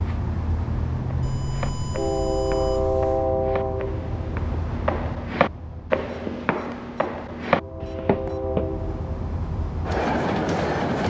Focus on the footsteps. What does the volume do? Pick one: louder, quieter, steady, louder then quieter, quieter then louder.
louder.